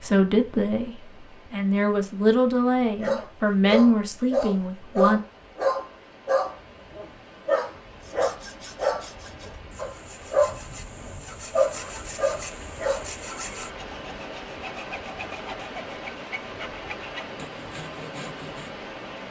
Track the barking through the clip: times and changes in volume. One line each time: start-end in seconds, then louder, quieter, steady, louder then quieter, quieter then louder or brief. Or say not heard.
3.0-13.1 steady.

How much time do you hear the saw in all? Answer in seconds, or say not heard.
11 s.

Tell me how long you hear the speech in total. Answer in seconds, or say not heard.
5 s.